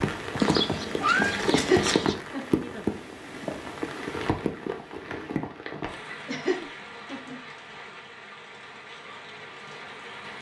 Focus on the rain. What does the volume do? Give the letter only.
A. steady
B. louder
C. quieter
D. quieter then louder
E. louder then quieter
C.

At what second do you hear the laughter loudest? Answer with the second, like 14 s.
2 s.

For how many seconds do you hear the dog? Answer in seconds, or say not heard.
not heard.